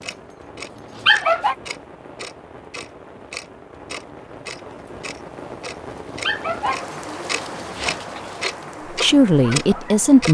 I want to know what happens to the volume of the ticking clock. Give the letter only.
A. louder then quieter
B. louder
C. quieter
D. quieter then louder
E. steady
B.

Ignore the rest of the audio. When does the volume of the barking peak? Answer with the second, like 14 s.
1 s.